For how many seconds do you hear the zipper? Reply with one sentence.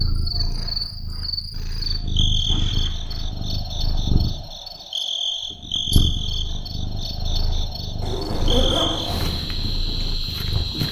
You can hear the zipper for 2 seconds altogether.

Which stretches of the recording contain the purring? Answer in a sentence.
The purring can be heard from 0.0 to 10.8 s.